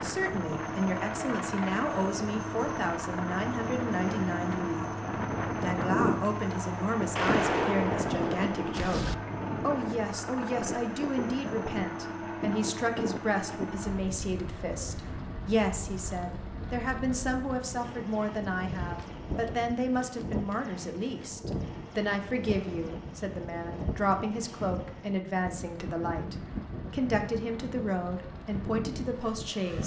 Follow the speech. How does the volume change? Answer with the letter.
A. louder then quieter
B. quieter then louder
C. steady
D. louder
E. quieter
C.